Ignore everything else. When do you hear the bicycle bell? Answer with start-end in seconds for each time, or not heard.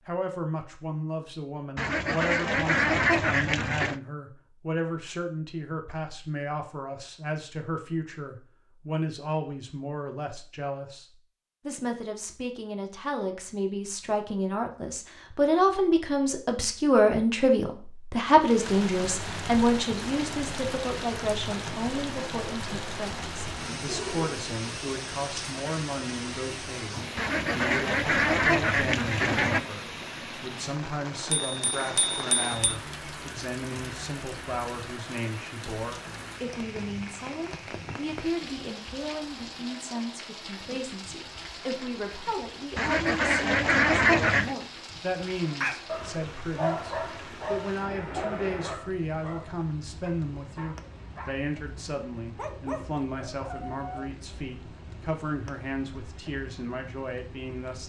31.3-32.8.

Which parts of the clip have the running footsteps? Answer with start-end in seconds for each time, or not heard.
not heard.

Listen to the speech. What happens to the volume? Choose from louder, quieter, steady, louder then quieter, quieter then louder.
louder then quieter.